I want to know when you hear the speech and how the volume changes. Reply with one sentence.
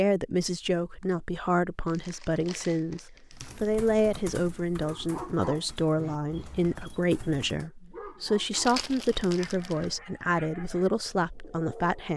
You can hear the speech from 0.0 to 12.1 s, at a steady volume.